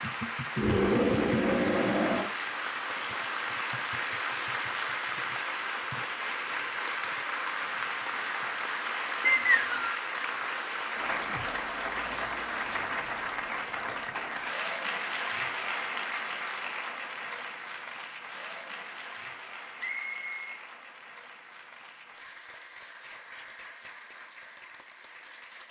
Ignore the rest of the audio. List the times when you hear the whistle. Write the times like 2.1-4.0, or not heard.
9.2-9.9, 19.8-20.6.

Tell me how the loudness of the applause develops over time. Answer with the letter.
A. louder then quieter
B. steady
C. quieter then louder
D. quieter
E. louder
D.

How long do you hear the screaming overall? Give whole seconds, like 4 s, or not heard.
2 s.